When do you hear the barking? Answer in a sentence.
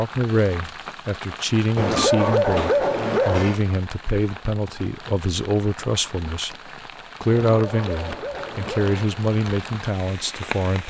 You can hear the barking from 1.8 to 3.6 s and from 7.4 to 9.2 s.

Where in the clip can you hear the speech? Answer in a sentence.
The speech can be heard from 0.0 to 6.5 s and from 7.2 to 10.8 s.